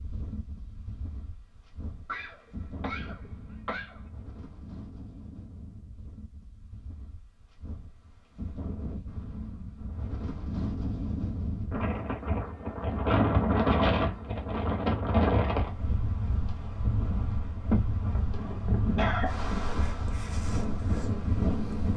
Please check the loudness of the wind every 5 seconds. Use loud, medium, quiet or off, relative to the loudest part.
quiet, quiet, loud, loud, loud.